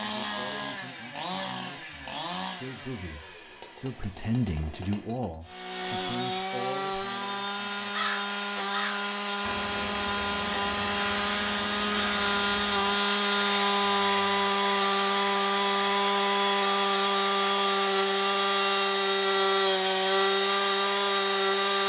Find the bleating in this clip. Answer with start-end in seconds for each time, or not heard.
not heard.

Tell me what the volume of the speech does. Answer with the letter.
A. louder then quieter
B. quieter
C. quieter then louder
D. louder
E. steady
A.